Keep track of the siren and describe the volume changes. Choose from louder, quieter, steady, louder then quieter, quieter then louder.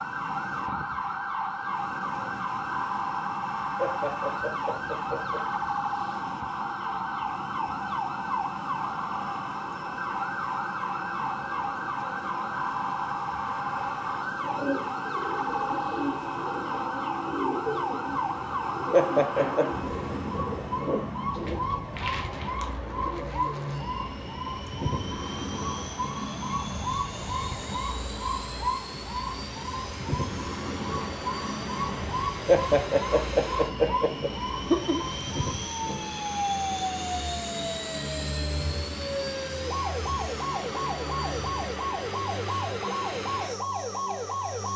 steady.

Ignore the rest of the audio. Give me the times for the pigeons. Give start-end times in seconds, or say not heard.
14.3-23.7.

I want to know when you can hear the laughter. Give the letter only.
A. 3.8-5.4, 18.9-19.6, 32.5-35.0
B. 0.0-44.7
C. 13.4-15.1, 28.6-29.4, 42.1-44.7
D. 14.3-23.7
A.